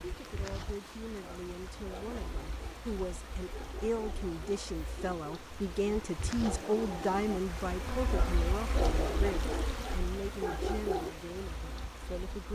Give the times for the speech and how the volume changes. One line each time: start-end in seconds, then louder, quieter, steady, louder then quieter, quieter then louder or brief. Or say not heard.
0.0-12.5 louder then quieter.